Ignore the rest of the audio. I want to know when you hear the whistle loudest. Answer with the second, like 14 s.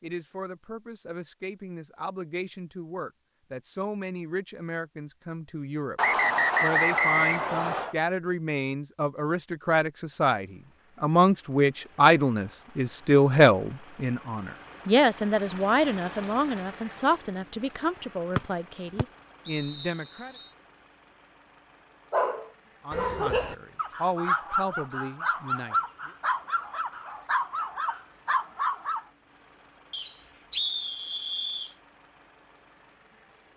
7 s.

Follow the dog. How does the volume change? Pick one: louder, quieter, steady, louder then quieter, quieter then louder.
steady.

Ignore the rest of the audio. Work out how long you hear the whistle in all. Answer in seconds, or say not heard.
6 s.